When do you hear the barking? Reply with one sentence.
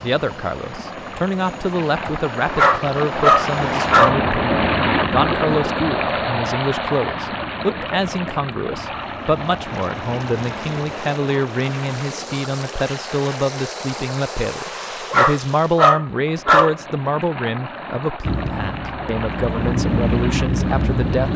The barking can be heard from 2.5 to 4.2 s and from 15.1 to 16.8 s.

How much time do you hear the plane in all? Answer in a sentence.
The plane can be heard for 14 seconds in total.